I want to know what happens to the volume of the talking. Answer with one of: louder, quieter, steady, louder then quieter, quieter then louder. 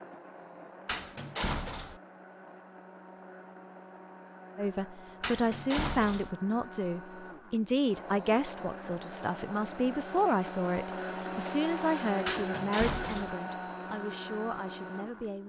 quieter.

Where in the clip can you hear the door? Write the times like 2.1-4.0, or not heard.
0.8-2.0, 5.2-6.3, 12.2-13.3.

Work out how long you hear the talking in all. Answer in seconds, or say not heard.
11 s.